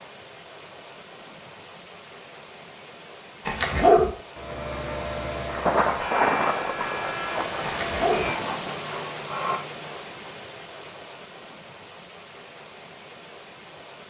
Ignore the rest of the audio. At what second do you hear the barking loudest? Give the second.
4 s.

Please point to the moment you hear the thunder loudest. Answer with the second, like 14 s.
6 s.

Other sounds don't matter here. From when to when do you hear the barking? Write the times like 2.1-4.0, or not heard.
3.5-4.1, 7.7-8.3.